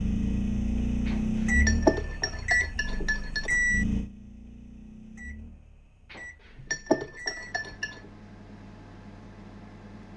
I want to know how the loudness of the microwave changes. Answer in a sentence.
The loudness of the microwave goes down.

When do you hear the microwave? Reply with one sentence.
You can hear the microwave from 0.0 to 10.1 s.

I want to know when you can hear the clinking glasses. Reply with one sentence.
The clinking glasses can be heard from 1.1 to 3.5 s and from 6.1 to 8.0 s.